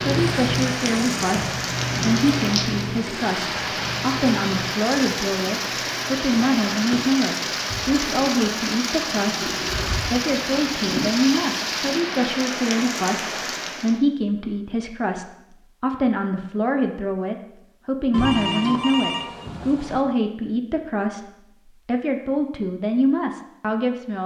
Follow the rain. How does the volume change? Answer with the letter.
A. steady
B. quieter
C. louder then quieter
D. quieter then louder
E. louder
A.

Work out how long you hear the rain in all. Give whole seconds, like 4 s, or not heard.
14 s.